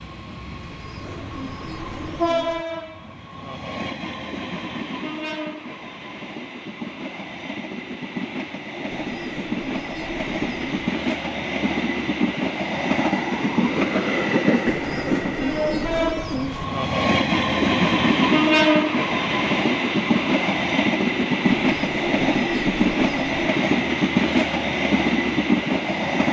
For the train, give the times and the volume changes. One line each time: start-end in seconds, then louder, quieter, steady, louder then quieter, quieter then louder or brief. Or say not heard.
0.0-26.2 louder.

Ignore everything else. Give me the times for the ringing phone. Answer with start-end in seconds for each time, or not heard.
not heard.